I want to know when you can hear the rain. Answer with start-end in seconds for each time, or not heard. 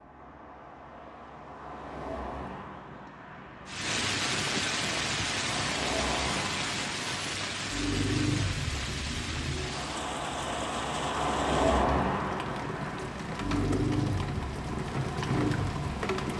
3.6-16.3.